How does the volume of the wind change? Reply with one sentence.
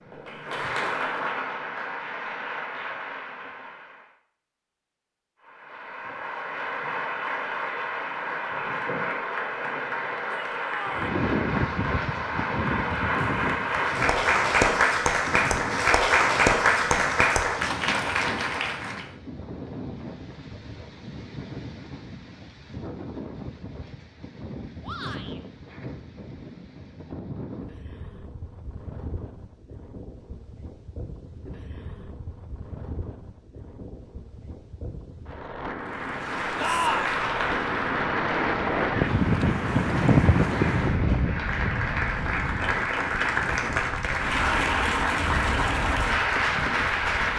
The loudness of the wind goes down, then up.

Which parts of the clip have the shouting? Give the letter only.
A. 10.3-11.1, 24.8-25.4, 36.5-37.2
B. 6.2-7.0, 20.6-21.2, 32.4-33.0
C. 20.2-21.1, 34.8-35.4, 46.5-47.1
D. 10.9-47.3
A.